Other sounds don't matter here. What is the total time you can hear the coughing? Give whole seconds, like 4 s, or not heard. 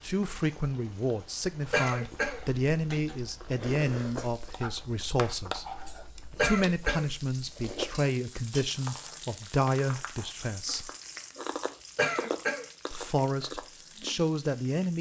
2 s.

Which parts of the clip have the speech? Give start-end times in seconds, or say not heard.
0.0-10.9, 12.9-14.9.